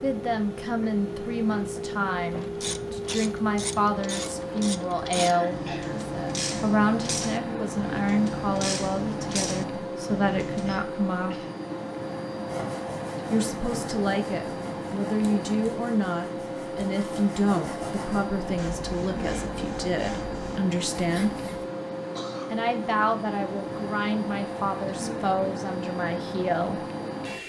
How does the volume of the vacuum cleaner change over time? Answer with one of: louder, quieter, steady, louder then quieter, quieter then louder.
steady.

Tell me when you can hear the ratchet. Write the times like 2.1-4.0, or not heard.
2.3-10.8.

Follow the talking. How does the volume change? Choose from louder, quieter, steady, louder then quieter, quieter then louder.
steady.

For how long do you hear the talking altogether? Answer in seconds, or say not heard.
24 s.